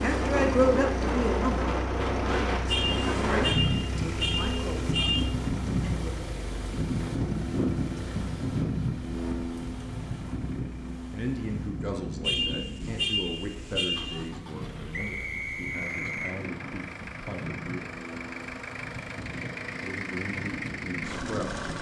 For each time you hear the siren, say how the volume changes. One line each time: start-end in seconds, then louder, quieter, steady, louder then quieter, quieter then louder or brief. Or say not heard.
not heard.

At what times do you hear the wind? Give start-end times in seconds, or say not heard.
0.0-21.7.